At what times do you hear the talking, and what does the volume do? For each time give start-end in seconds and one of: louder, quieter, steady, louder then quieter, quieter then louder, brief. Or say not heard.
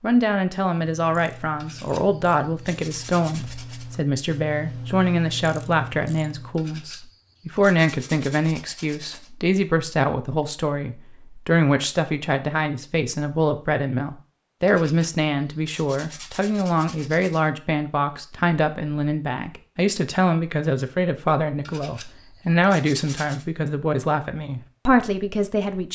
0.0-25.9 steady.